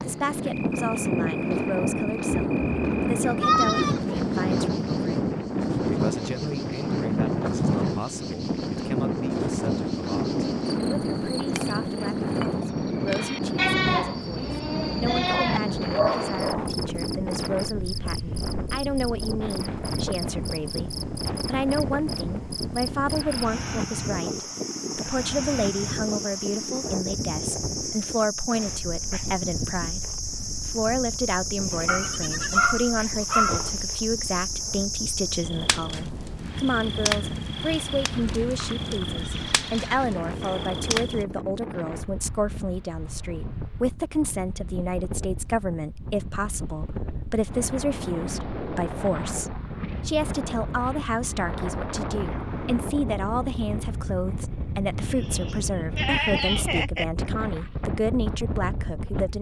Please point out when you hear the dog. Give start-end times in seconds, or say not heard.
15.3-16.8, 31.9-33.9.